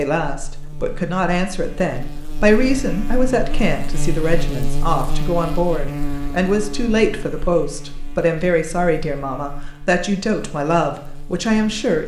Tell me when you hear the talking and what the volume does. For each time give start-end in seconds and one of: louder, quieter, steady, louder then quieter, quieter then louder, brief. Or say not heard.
0.0-12.0 steady.